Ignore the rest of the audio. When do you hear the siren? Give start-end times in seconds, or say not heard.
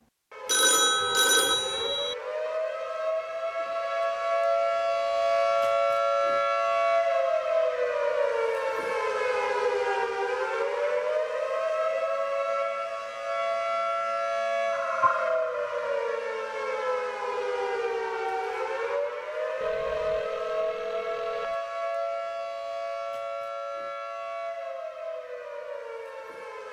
0.0-26.6.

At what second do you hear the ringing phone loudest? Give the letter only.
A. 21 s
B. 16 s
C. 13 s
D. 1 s
D.